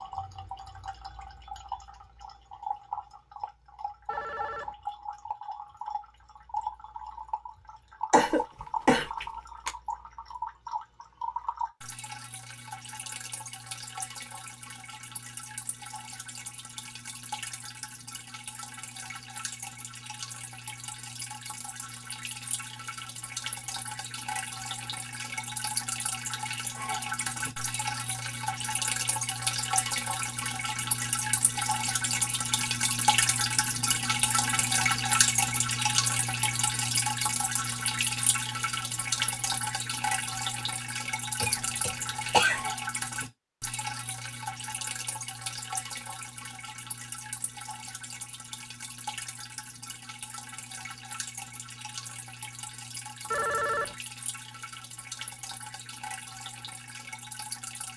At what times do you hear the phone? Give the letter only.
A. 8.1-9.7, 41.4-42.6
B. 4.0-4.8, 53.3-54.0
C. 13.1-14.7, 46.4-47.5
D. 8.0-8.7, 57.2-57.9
B.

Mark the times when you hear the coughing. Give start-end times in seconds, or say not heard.
8.1-9.7, 41.4-42.6.